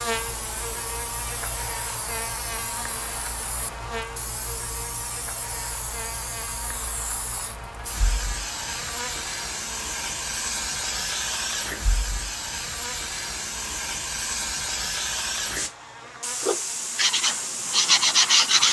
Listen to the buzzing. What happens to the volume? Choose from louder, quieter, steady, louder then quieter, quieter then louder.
quieter.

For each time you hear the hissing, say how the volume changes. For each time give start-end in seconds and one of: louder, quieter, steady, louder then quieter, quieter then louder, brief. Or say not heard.
0.0-18.6 louder.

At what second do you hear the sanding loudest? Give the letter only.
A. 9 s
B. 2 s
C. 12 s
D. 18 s
D.